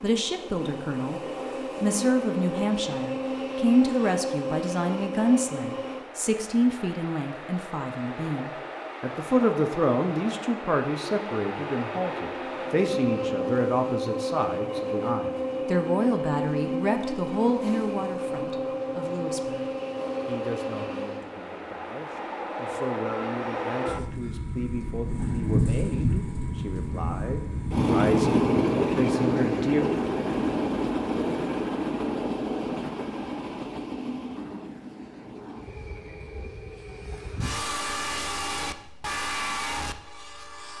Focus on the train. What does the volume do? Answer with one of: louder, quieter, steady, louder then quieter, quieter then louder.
louder then quieter.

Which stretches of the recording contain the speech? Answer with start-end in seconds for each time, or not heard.
0.0-29.9.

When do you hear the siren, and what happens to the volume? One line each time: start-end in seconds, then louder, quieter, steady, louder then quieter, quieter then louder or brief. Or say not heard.
not heard.